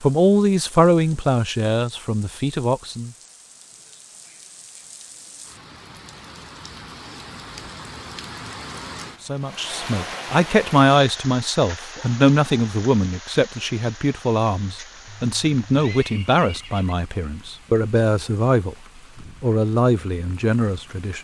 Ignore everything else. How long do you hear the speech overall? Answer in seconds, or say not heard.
14 s.